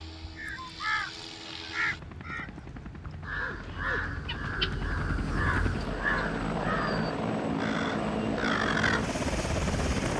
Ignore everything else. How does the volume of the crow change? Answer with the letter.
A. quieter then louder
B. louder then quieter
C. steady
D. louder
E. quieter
C.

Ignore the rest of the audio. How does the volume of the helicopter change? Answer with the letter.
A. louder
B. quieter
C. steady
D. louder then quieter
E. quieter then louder
A.